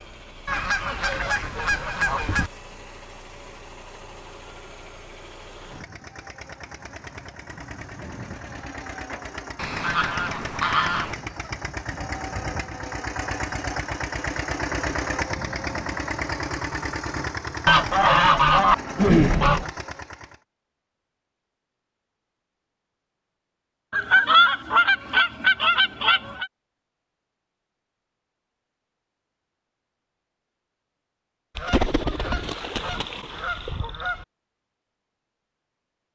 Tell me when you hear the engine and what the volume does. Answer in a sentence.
You can hear the engine from 0.0 to 20.4 s, getting louder.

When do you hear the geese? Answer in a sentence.
You can hear the geese from 0.5 to 2.5 s, from 9.6 to 11.2 s, from 17.6 to 19.7 s, from 23.9 to 26.5 s and from 31.6 to 34.2 s.